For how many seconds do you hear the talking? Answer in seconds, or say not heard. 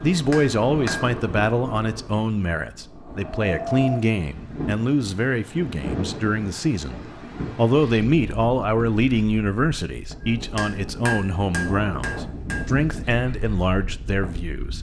15 s.